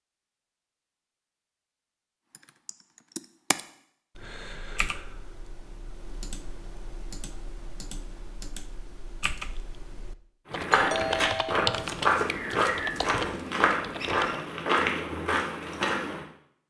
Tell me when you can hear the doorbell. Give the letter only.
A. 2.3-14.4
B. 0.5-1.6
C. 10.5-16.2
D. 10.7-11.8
D.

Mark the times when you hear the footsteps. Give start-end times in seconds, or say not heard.
10.5-16.2.